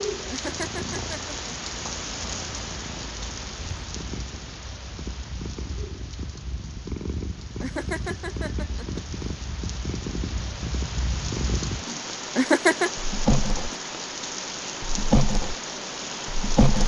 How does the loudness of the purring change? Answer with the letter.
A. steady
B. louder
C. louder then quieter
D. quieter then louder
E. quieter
B.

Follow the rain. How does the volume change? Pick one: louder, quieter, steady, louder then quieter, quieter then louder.
quieter then louder.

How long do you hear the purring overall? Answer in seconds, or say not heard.
17 s.